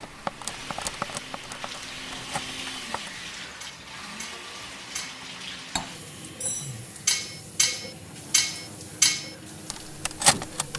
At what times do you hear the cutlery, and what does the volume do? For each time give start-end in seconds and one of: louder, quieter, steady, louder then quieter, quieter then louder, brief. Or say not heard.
0.0-10.7 quieter then louder.